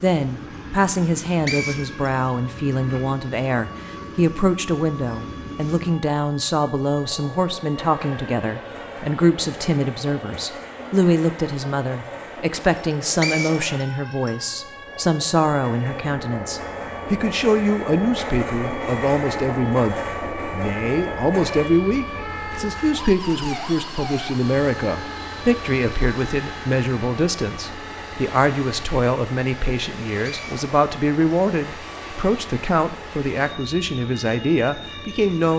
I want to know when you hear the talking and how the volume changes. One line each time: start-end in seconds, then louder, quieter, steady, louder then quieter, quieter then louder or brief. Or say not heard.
0.0-35.5 steady.